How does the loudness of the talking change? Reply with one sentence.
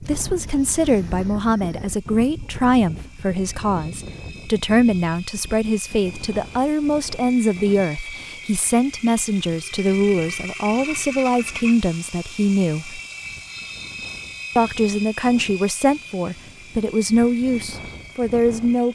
The loudness of the talking stays about the same.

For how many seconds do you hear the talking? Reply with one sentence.
The talking can be heard for 17 seconds in total.